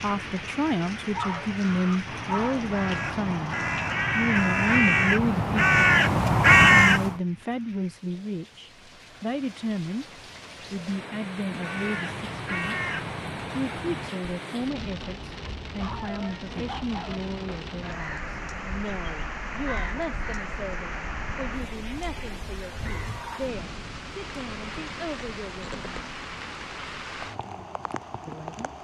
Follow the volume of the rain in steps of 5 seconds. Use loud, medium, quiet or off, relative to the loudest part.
loud, quiet, loud, loud, loud, loud.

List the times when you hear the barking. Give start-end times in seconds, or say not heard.
1.1-2.7, 15.8-17.2.